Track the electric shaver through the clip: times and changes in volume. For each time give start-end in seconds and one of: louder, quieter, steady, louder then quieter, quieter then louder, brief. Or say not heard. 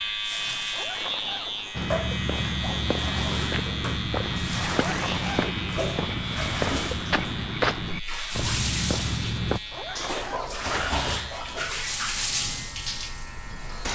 0.0-13.9 quieter.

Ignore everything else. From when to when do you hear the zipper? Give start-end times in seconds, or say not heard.
0.7-1.7, 4.7-5.5, 9.7-11.0.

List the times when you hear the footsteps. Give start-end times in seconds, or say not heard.
1.8-9.6.